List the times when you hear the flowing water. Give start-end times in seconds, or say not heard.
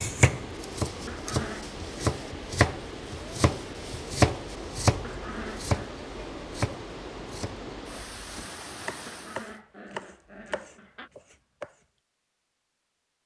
0.0-9.6.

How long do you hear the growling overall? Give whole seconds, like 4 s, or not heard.
4 s.